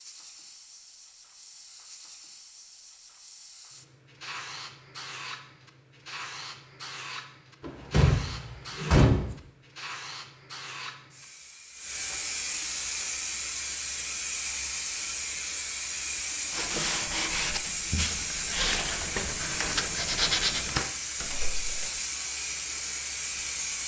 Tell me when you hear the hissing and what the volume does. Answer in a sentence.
You can hear the hissing from 0.0 to 23.8 s, getting louder.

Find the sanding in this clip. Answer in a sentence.
You can hear the sanding from 16.5 to 20.9 s.